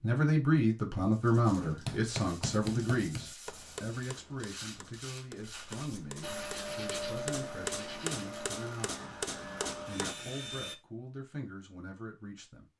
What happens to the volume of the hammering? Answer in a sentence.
The volume of the hammering goes down, then up.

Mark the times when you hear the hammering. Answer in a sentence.
The hammering can be heard from 1.6 to 10.2 s.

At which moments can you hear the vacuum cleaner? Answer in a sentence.
The vacuum cleaner can be heard from 6.2 to 10.8 s.